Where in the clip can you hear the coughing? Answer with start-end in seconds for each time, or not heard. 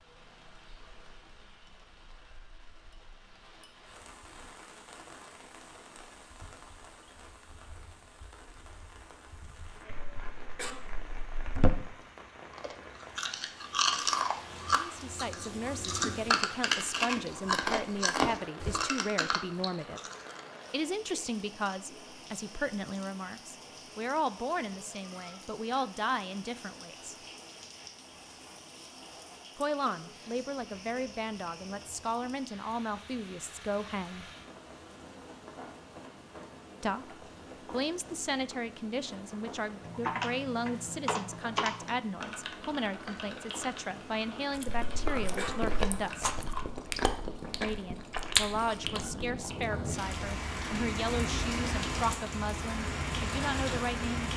9.9-11.7, 44.6-45.8.